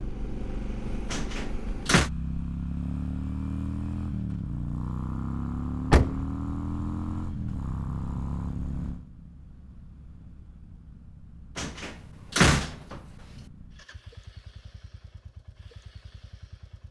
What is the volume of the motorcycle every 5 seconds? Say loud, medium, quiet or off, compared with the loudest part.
loud, loud, quiet, quiet.